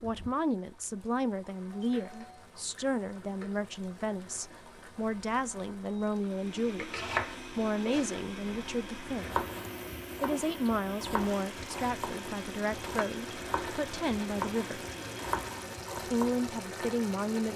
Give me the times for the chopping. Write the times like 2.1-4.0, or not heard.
6.5-16.4.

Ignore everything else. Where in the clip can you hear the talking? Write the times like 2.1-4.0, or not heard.
0.0-9.4, 10.2-14.8, 15.9-17.5.